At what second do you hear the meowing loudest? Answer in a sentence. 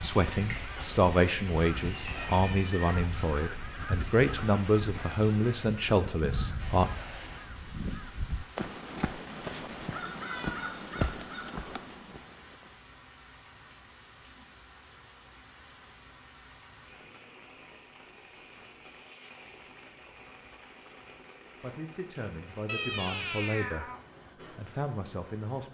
The loudest moment of the meowing is at 23 seconds.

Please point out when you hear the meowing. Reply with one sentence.
The meowing can be heard from 2.1 to 3.0 s, from 10.2 to 10.7 s and from 22.6 to 24.0 s.